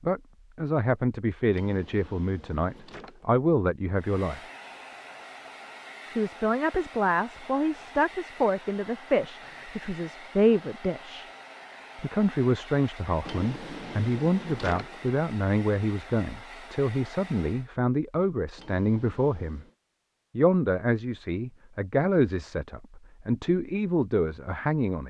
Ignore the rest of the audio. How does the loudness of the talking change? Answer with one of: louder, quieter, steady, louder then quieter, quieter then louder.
steady.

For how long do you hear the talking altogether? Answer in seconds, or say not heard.
22 s.